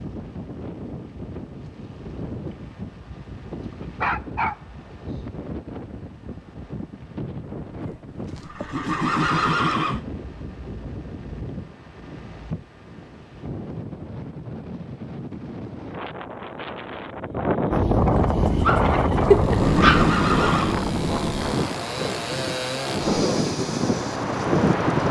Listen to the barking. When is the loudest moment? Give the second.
19 s.